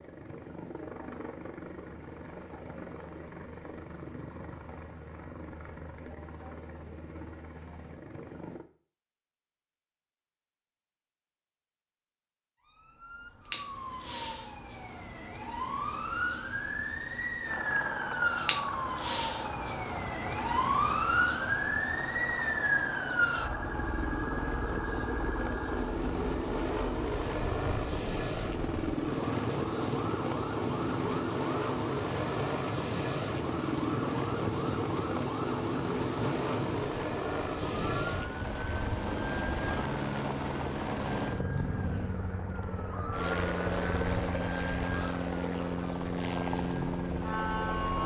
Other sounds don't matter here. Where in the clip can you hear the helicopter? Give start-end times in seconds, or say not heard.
0.0-8.7, 17.4-48.0.